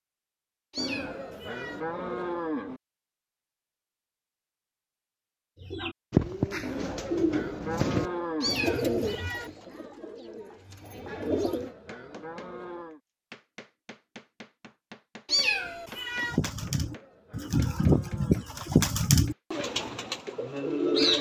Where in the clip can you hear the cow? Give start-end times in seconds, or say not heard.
0.8-2.8, 6.6-8.7, 11.2-13.0, 16.6-18.6.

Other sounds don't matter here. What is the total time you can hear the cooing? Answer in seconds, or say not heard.
11 s.